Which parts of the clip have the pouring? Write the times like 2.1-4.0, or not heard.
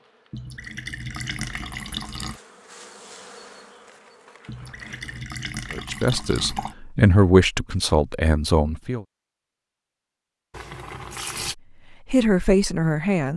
0.3-2.4, 4.5-6.8, 10.5-11.6.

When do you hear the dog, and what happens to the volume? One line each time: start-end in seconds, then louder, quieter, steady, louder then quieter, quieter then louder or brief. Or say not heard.
not heard.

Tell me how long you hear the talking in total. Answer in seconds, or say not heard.
5 s.